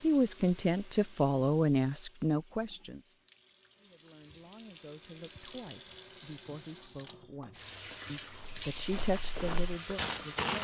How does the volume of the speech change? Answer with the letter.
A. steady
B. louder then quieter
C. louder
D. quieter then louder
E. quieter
D.